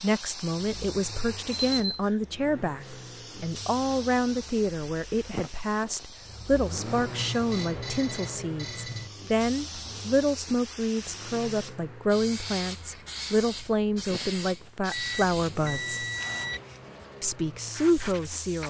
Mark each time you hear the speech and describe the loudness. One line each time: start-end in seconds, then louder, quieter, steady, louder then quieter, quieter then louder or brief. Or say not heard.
0.0-16.0 steady
17.2-18.6 brief.